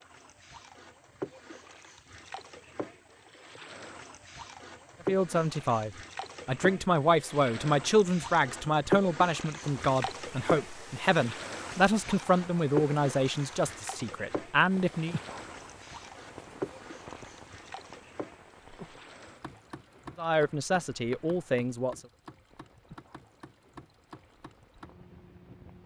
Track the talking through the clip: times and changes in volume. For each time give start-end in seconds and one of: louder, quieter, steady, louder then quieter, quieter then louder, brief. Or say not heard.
5.0-15.2 steady
20.1-22.0 brief.